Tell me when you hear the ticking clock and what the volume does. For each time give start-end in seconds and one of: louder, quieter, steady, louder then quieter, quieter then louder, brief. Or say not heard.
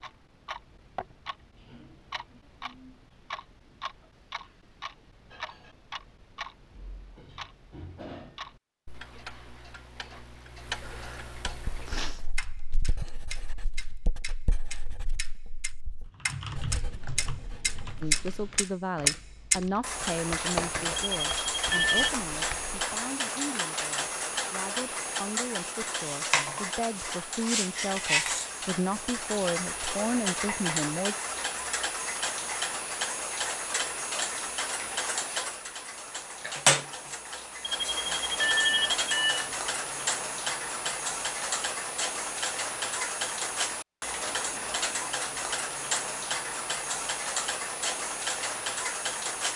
0.0-49.5 louder.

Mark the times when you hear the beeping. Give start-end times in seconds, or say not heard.
20.9-22.1, 37.6-39.5.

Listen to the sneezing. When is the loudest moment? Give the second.
12 s.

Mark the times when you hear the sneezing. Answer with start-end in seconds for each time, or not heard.
10.8-12.2.